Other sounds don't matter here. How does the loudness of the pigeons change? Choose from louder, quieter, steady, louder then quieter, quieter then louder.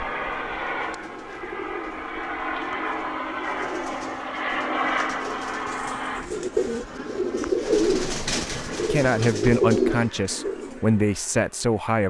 louder.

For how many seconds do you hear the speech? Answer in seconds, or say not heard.
3 s.